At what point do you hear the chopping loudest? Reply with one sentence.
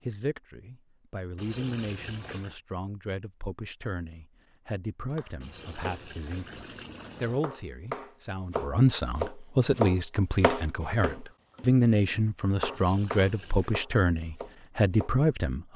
The loudest moment of the chopping is at 10 seconds.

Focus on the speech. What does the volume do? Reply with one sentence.
The volume of the speech goes up.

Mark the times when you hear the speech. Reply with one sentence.
The speech can be heard from 0.1 to 15.7 s.